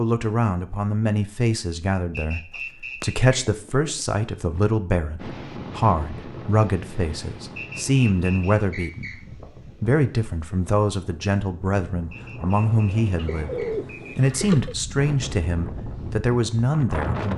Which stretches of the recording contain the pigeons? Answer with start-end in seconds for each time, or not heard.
2.5-3.9, 13.2-14.8.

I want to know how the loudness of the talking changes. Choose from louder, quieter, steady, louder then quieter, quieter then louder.
steady.